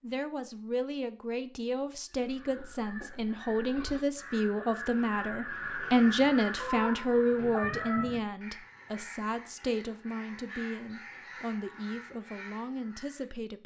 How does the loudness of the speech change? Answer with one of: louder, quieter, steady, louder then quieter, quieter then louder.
louder then quieter.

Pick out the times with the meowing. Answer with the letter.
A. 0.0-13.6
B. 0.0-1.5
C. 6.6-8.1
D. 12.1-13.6
C.